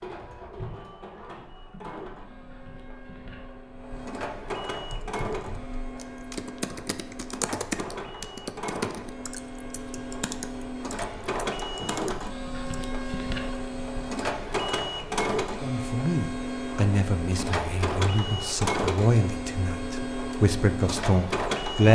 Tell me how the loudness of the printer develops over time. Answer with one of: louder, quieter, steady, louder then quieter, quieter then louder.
louder.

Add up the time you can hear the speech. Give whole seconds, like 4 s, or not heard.
6 s.